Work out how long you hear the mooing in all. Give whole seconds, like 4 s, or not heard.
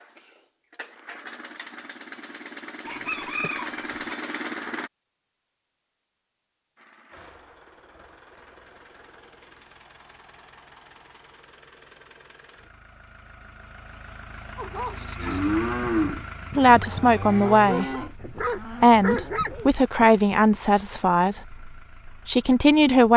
5 s.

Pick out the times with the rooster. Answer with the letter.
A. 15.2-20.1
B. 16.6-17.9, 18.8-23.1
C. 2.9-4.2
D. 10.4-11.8
C.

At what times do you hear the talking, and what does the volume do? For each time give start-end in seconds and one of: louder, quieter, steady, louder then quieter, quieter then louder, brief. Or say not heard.
16.6-17.9 brief
18.8-23.1 quieter then louder.